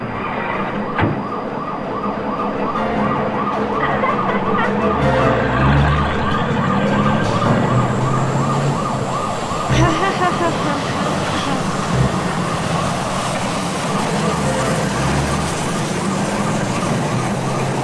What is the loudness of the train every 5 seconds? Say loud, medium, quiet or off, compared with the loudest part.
medium, medium, loud, loud.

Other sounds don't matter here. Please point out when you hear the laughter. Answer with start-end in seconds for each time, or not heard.
3.8-4.7, 9.7-11.7.